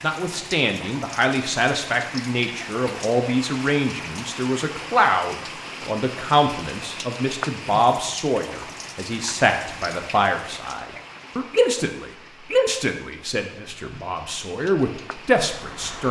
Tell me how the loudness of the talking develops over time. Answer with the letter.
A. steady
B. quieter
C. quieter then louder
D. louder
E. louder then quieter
A.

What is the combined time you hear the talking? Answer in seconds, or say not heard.
16 s.